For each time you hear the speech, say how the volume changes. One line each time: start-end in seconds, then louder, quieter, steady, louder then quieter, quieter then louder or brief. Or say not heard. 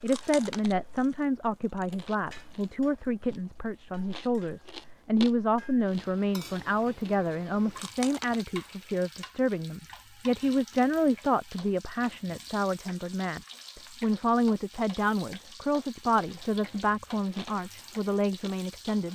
0.0-19.0 steady.